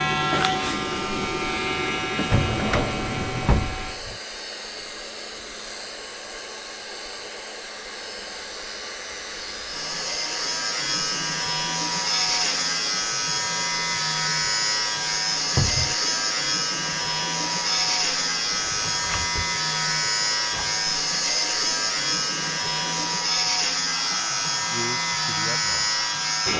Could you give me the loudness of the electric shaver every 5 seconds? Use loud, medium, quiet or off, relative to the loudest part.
loud, quiet, loud, loud, loud, loud.